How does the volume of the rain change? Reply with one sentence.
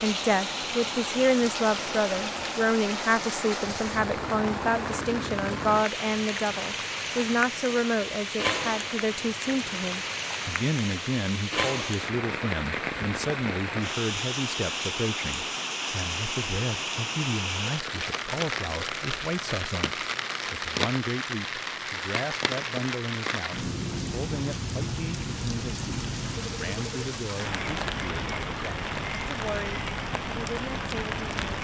The volume of the rain stays about the same.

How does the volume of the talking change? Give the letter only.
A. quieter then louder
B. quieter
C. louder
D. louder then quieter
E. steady
B.